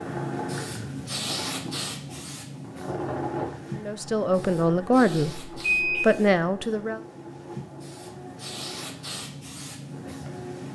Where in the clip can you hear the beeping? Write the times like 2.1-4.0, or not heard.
5.6-6.0.